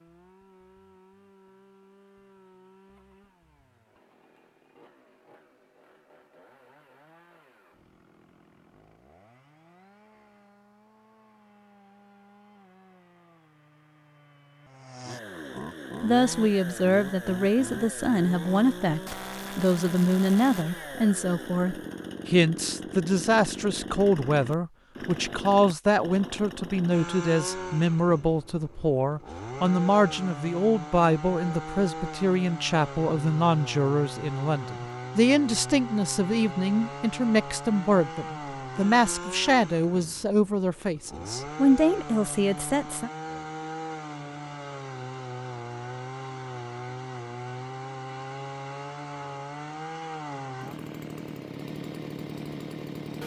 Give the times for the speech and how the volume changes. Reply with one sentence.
The speech can be heard from 16.0 to 43.1 s, at a steady volume.